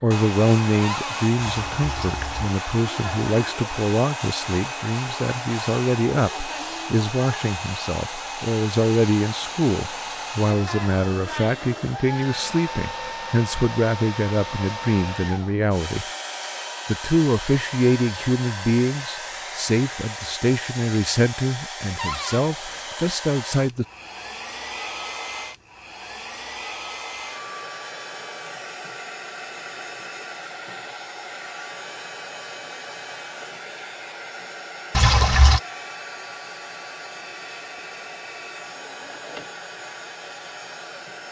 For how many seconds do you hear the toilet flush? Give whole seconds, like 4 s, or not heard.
2 s.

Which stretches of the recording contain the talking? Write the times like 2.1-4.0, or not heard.
0.0-16.1, 16.9-23.9.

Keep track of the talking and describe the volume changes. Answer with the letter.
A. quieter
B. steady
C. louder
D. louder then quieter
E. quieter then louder
B.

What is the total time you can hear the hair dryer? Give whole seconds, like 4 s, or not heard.
41 s.